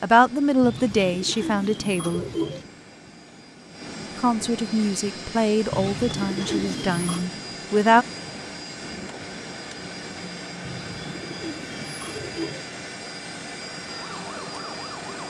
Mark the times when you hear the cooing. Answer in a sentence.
The cooing can be heard from 0.6 to 2.6 s, from 5.7 to 7.3 s and from 10.6 to 12.7 s.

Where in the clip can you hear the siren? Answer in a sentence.
You can hear the siren from 13.8 to 15.2 s.